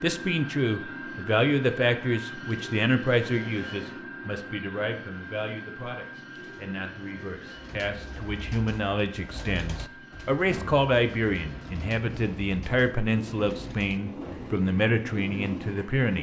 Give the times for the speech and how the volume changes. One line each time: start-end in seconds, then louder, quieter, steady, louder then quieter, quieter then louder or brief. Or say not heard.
0.0-16.1 quieter then louder.